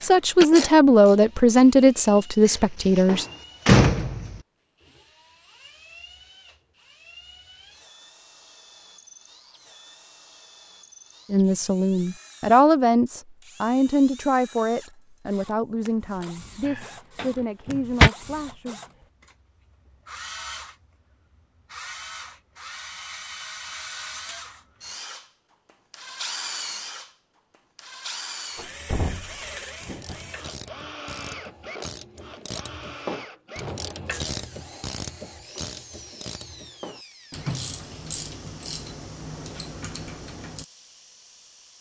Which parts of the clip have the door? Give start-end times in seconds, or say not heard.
2.5-4.3, 16.6-18.1, 28.6-30.2.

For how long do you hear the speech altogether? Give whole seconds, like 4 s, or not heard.
11 s.